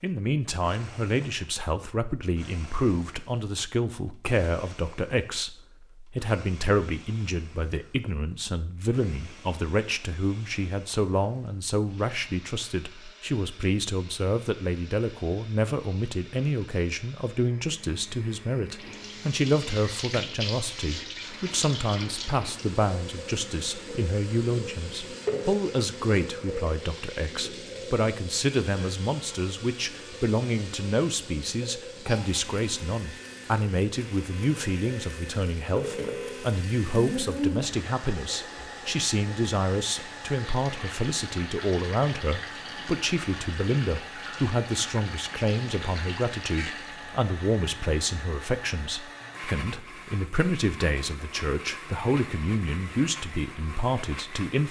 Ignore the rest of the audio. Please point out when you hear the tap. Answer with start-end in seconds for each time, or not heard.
18.8-47.2.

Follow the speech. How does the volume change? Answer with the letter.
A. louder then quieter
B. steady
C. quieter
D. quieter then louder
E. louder
B.